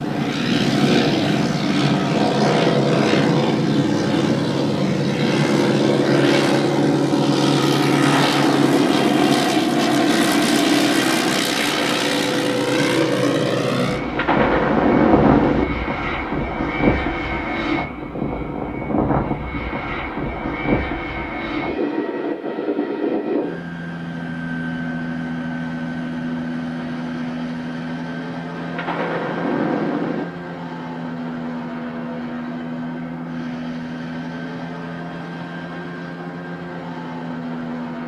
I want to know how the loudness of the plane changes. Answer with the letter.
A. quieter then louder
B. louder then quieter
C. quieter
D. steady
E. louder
C.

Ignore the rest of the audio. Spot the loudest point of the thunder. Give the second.
15 s.